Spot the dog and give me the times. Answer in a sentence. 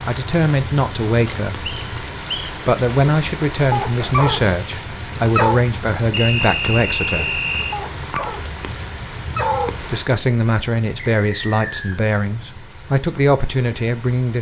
The dog can be heard from 3.7 to 5.6 s and from 7.7 to 9.8 s.